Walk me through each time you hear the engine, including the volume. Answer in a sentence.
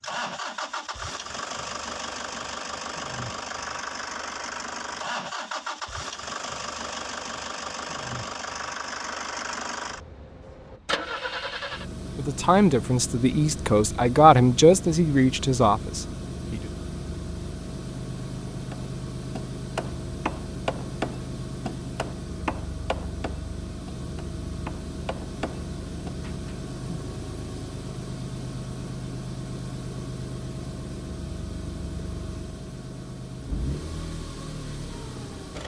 The engine can be heard from 0.0 to 35.6 s, at a steady volume.